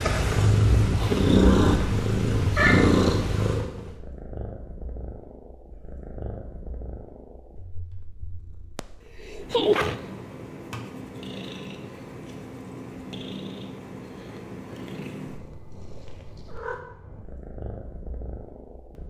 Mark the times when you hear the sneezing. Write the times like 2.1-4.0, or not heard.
8.8-10.0.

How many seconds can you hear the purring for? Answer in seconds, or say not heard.
19 s.